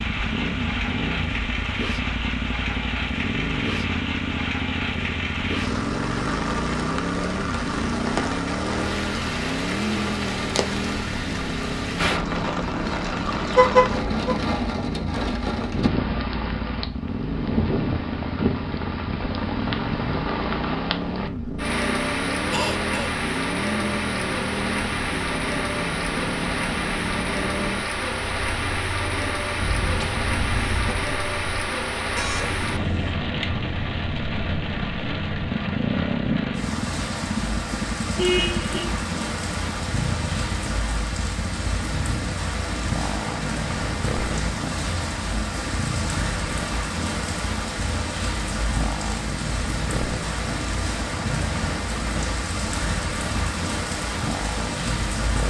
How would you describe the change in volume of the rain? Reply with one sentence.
The loudness of the rain stays about the same.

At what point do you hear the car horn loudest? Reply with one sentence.
The loudest moment of the car horn is at 14 seconds.